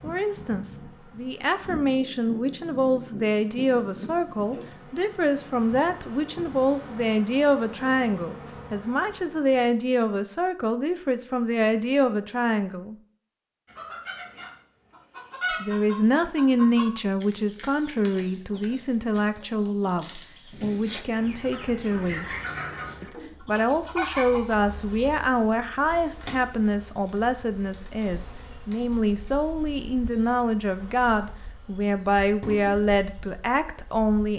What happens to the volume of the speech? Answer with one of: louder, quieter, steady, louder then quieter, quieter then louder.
steady.